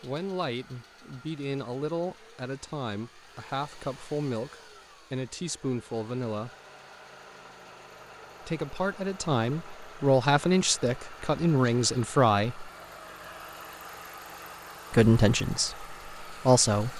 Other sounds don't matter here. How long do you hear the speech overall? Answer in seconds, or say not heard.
13 s.